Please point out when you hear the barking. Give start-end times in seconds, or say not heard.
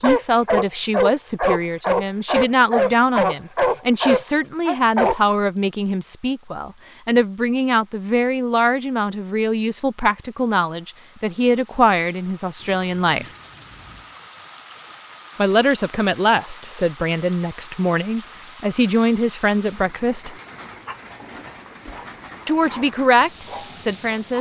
0.0-5.2, 20.8-24.3.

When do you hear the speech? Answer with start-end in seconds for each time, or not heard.
0.0-13.2, 15.3-20.4, 22.4-24.3.